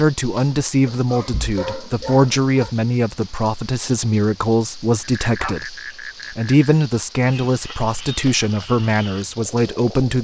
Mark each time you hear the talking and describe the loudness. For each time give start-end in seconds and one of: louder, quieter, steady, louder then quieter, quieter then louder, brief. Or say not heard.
0.0-10.1 steady.